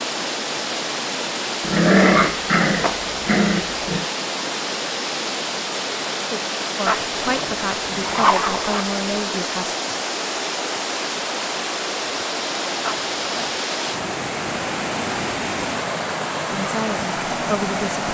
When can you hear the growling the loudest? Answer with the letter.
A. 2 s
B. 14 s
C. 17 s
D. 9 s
A.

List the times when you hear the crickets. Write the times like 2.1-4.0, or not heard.
not heard.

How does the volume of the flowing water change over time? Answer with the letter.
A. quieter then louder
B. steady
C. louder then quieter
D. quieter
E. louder
B.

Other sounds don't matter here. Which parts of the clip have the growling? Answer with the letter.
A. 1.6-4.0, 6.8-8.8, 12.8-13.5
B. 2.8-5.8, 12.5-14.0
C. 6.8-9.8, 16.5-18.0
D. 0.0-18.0
A.